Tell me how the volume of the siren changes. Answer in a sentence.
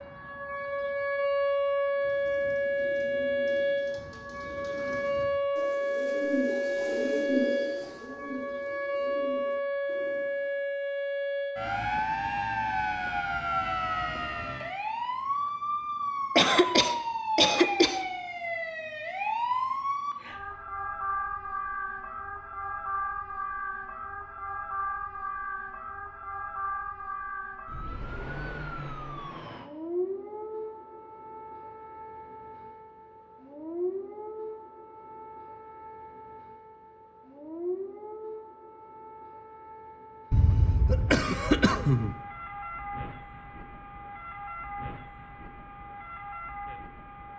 The loudness of the siren goes down.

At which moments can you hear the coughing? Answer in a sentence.
The coughing can be heard from 16.4 to 18.0 s and from 40.3 to 42.1 s.